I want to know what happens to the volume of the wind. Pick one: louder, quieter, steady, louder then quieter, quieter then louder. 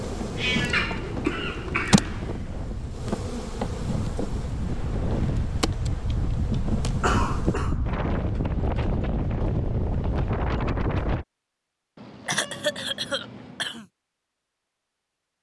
louder.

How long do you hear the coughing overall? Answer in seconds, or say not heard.
5 s.